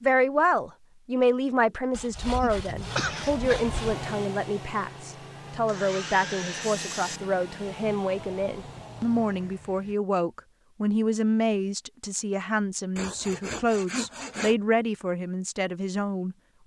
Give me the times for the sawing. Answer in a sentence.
You can hear the sawing from 1.9 to 4.0 s, from 5.7 to 7.2 s and from 12.9 to 14.6 s.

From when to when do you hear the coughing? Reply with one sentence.
The coughing can be heard from 2.4 to 3.8 s.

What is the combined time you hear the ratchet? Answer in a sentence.
You can't hear the ratchet here.